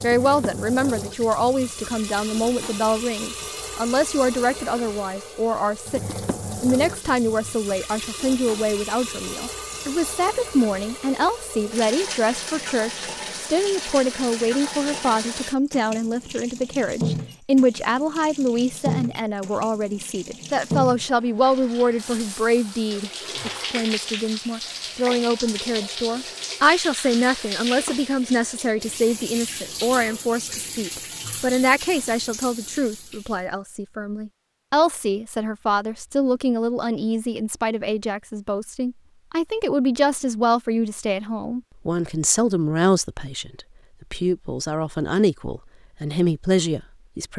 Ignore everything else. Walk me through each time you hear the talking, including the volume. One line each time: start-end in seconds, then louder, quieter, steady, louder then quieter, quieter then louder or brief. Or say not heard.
0.0-47.3 steady.